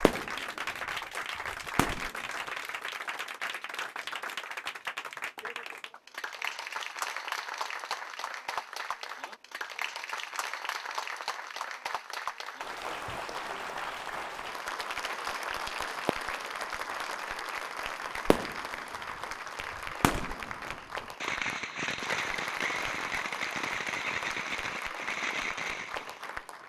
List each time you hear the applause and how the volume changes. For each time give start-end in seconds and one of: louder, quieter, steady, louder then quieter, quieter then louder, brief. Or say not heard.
0.0-26.6 steady.